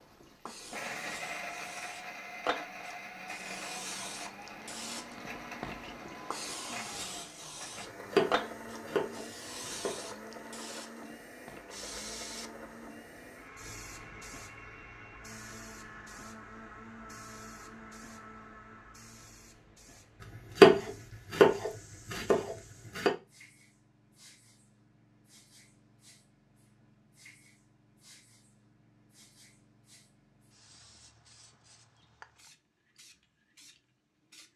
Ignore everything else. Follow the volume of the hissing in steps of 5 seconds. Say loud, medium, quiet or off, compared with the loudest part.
loud, loud, medium, quiet, quiet, quiet, quiet.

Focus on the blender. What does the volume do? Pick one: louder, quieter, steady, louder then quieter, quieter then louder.
quieter.